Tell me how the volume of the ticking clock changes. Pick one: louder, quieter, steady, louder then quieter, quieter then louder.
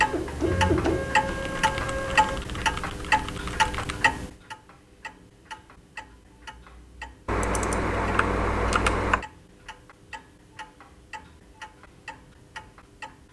quieter.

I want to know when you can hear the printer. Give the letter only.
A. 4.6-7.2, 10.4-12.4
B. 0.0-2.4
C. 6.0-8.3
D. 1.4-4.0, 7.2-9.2
B.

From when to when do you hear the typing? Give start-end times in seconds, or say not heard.
1.4-4.0, 7.2-9.2.